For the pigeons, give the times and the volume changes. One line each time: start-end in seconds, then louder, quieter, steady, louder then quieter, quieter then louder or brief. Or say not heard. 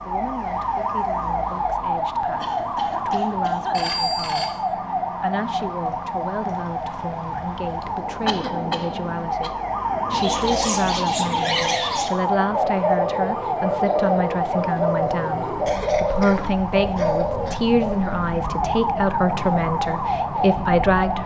10.1-18.2 steady.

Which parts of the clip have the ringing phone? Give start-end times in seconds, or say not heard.
3.7-4.5.